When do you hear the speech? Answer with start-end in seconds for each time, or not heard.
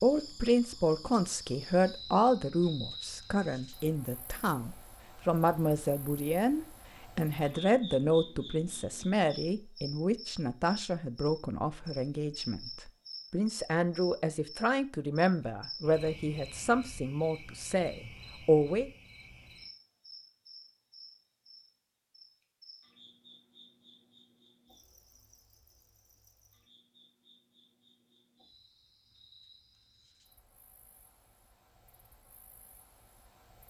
0.0-18.9.